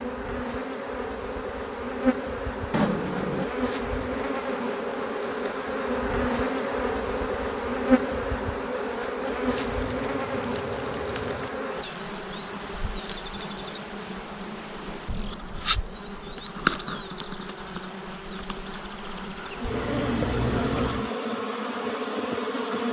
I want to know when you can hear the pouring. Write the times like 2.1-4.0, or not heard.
2.7-3.5, 9.4-11.5, 19.7-21.1.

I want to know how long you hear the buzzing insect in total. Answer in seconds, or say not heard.
23 s.